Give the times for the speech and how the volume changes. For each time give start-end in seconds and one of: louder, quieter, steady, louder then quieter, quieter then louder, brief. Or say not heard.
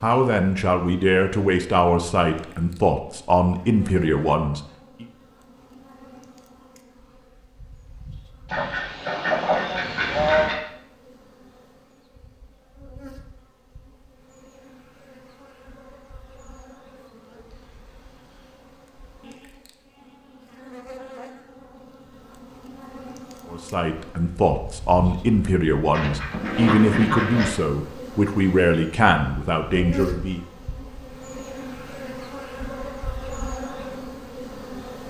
0.0-5.0 steady
23.5-30.4 steady.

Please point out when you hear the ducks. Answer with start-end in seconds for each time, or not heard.
8.4-10.6, 25.9-27.6.